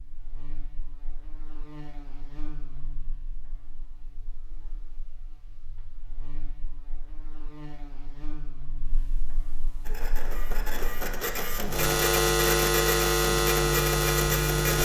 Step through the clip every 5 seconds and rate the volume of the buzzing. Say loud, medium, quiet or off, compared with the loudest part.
quiet, quiet, loud.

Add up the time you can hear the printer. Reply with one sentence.
You can hear the printer for 5 seconds altogether.